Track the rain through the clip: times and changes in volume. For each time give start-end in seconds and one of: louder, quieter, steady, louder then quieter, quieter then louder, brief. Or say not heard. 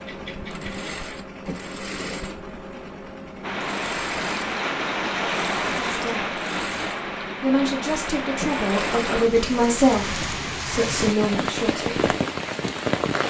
3.4-13.2 steady.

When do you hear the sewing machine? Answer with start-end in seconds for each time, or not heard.
0.0-10.4.